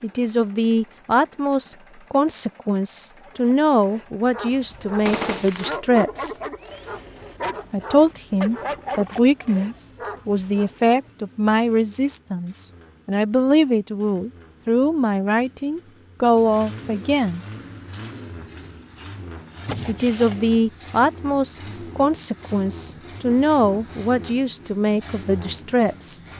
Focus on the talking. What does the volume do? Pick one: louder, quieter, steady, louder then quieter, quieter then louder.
steady.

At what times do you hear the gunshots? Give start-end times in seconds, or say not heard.
5.0-5.8, 19.6-20.5.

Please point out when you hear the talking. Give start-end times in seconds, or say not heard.
0.0-6.3, 7.7-17.4, 19.9-26.2.